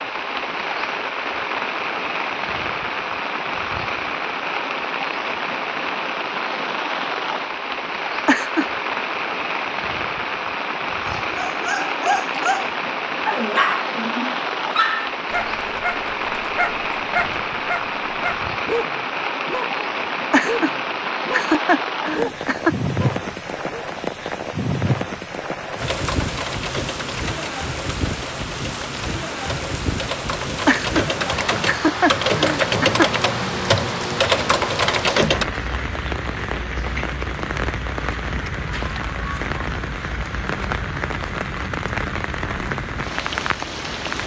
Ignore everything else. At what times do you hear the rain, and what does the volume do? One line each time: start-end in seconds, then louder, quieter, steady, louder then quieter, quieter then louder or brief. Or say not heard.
0.0-44.2 steady.